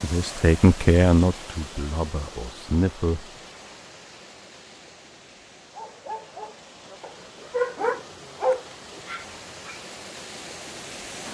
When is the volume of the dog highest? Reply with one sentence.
The loudest moment of the dog is at 8 seconds.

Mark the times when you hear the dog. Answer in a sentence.
You can hear the dog from 5.7 to 9.8 s.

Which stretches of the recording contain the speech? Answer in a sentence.
You can hear the speech from 0.0 to 3.3 s.